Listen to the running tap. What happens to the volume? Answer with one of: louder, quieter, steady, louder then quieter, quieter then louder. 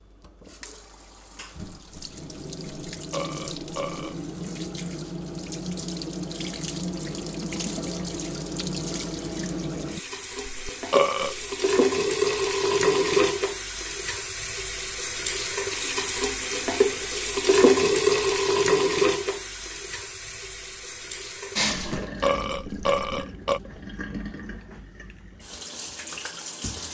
louder then quieter.